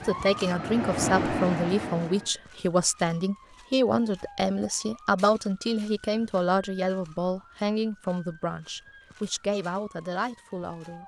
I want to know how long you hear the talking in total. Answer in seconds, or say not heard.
11 s.